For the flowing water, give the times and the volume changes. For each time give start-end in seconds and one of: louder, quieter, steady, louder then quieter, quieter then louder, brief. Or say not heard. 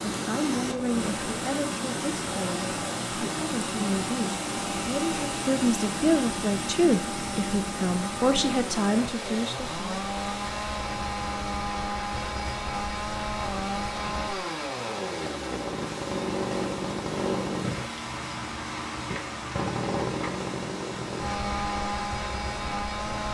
0.0-23.2 quieter.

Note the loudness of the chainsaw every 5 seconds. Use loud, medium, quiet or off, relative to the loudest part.
medium, medium, loud, loud, loud.